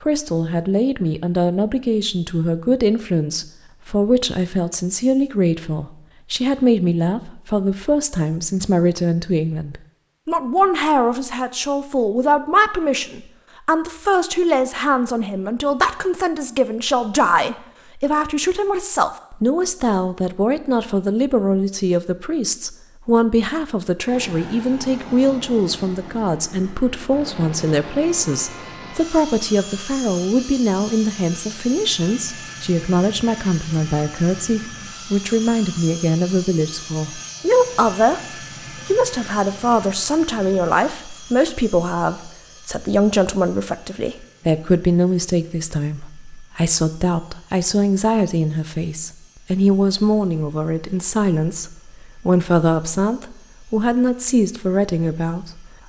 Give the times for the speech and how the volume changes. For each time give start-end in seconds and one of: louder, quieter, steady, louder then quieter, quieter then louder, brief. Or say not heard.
0.0-38.2 steady
38.9-55.6 steady.